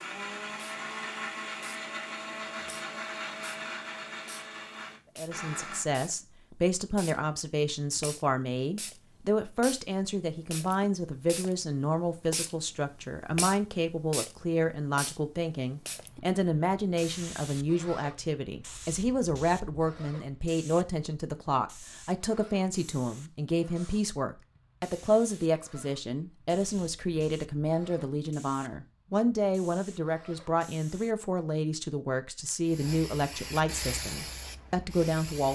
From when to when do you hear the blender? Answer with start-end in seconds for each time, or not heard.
0.0-5.8.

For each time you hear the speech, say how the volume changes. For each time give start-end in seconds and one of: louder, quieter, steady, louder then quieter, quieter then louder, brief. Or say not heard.
5.2-35.5 steady.